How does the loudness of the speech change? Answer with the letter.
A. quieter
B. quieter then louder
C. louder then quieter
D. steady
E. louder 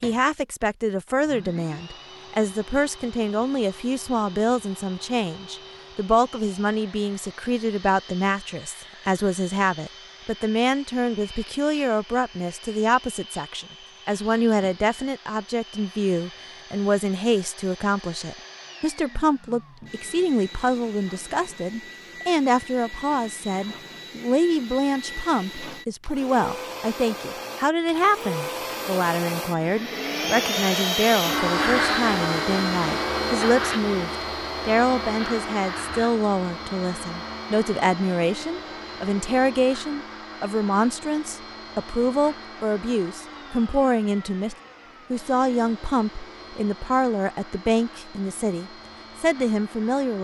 D.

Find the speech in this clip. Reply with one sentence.
You can hear the speech from 0.0 to 50.1 s.